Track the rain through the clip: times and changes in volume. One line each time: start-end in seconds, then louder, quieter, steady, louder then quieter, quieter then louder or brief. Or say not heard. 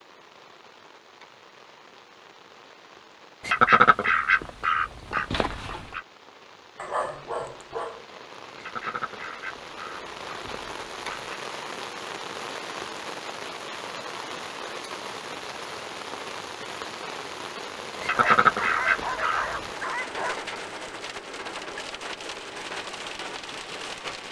0.0-24.2 louder.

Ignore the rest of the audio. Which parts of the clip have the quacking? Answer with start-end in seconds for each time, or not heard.
3.5-6.0, 8.6-11.3, 18.0-19.4.